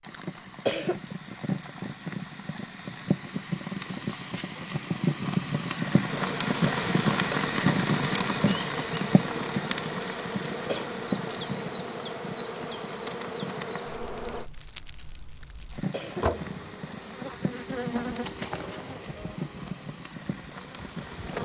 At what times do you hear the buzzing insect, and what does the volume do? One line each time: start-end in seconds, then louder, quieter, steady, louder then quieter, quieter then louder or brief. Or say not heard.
6.0-14.5 steady
16.0-21.3 louder then quieter.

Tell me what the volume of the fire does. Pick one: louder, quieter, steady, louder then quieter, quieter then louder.
louder then quieter.